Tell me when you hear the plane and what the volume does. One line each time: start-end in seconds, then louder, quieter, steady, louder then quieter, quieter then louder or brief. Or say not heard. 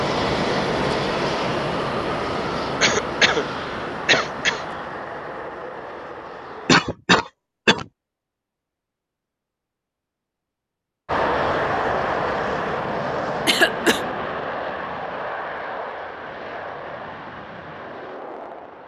0.0-6.8 quieter
11.1-18.8 quieter.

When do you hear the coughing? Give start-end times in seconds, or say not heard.
2.8-4.7, 6.7-7.8, 13.4-14.0.